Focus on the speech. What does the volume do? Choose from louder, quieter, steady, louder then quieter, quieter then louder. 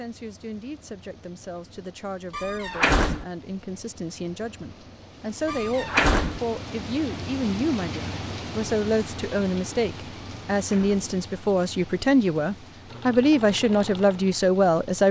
louder.